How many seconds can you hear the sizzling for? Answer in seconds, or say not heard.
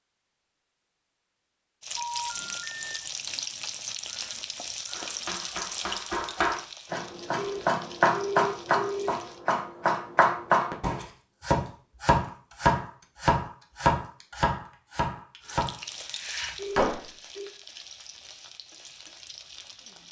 12 s.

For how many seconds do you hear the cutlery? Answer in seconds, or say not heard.
not heard.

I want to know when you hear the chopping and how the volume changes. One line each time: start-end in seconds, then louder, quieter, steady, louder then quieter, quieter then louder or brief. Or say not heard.
4.9-17.0 louder then quieter.